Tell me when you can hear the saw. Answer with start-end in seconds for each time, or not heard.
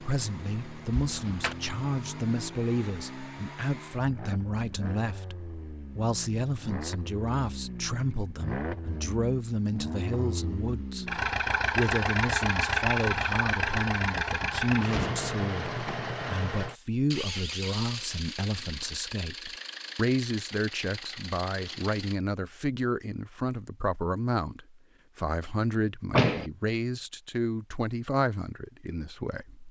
not heard.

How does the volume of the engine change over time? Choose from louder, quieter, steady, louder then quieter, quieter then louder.
louder then quieter.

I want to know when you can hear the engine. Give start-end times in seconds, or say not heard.
0.0-22.1.